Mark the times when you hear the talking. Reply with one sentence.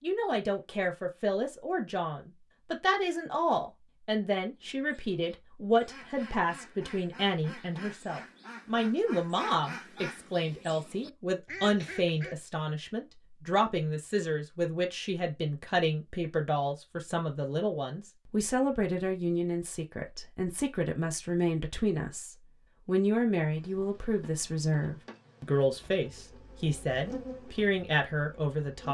You can hear the talking from 0.0 to 28.8 s.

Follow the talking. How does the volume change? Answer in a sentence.
The loudness of the talking stays about the same.